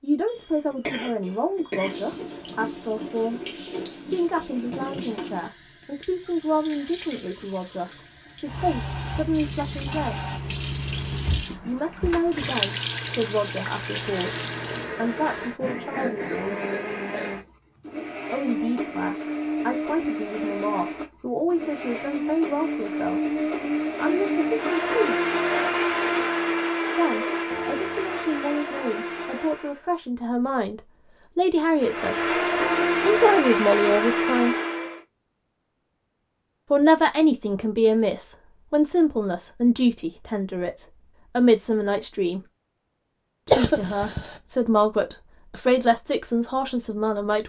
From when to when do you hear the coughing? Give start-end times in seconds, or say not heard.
0.2-1.9, 15.9-17.4, 43.5-44.3.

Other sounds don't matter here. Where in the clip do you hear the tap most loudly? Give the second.
13 s.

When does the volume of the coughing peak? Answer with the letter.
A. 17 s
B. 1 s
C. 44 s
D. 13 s
C.